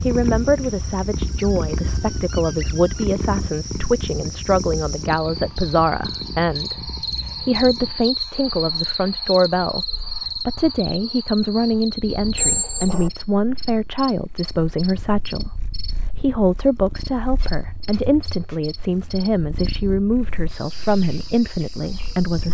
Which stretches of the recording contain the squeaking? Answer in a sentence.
You can hear the squeaking from 1.2 to 3.0 s, from 12.3 to 13.1 s and from 17.4 to 18.6 s.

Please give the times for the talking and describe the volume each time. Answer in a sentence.
You can hear the talking from 0.1 to 22.4 s, at a steady volume.